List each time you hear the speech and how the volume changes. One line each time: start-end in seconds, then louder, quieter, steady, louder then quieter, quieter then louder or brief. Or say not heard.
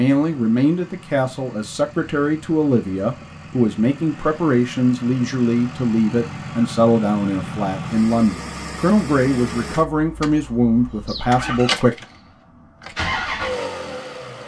0.0-11.9 steady.